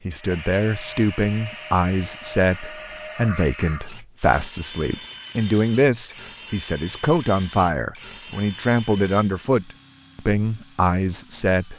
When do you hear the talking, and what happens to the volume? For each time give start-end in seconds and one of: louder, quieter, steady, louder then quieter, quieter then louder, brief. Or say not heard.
0.1-11.7 steady.